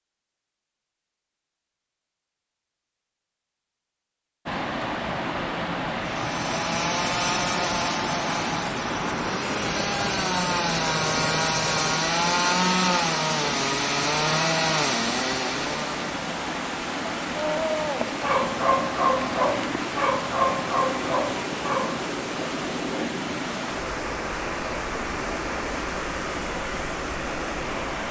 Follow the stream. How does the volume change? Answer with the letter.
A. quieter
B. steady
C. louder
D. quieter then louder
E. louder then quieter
B.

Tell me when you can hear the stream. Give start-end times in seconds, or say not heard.
4.5-28.0.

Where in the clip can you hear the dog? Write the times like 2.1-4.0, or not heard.
17.4-22.1.